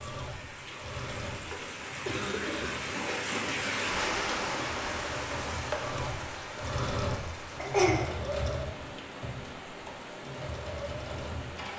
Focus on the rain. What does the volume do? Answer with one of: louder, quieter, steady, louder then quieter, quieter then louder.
louder then quieter.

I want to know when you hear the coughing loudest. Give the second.
8 s.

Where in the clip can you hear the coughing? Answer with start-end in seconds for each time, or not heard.
2.0-2.8, 7.6-8.1.